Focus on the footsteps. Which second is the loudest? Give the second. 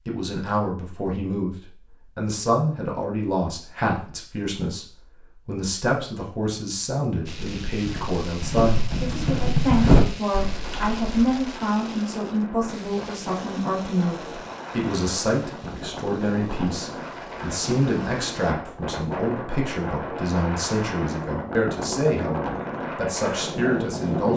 10 s.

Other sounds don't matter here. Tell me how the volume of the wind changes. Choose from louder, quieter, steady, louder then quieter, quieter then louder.
louder.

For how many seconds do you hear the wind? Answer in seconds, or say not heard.
14 s.